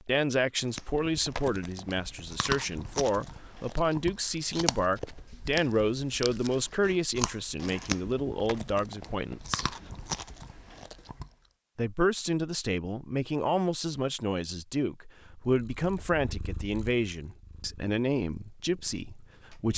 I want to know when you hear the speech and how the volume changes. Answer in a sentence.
You can hear the speech from 0.0 to 9.8 s, at a steady volume; and from 11.8 to 19.7 s, at a steady volume.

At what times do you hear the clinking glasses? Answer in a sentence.
The clinking glasses can't be heard in this clip.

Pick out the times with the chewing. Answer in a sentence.
You can hear the chewing from 0.8 to 11.3 s.